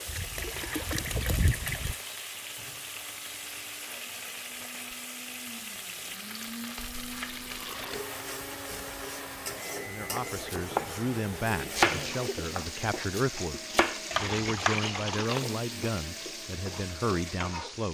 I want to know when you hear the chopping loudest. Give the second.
12 s.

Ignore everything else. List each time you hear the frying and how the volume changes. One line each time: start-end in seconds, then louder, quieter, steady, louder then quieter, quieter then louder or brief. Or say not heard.
0.0-17.9 steady.